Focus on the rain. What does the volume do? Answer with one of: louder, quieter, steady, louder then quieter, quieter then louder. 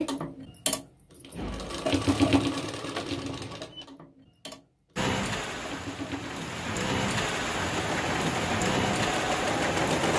louder.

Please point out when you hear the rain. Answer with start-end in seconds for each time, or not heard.
5.0-10.1.